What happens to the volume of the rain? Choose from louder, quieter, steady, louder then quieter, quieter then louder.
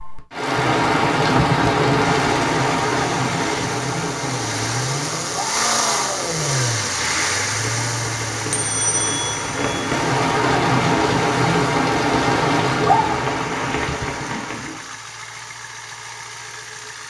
quieter then louder.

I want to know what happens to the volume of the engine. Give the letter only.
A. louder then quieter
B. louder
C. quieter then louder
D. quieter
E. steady
A.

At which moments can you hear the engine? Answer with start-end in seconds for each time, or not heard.
2.0-17.0.